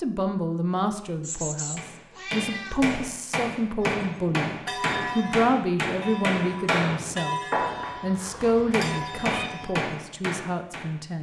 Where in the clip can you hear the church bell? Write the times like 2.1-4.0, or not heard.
3.8-9.9.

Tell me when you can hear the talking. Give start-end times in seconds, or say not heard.
0.0-4.5, 5.2-7.4, 8.0-11.1.